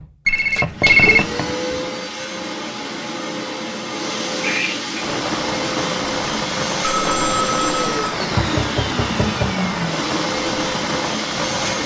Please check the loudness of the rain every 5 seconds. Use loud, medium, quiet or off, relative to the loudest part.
off, loud, loud.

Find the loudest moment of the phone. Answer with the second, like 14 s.
1 s.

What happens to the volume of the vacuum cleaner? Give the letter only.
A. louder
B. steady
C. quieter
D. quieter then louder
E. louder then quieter
B.